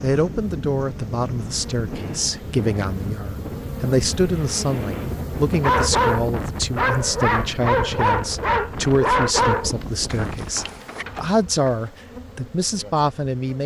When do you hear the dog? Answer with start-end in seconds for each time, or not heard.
5.6-11.1.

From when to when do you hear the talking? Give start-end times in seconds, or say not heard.
0.0-13.6.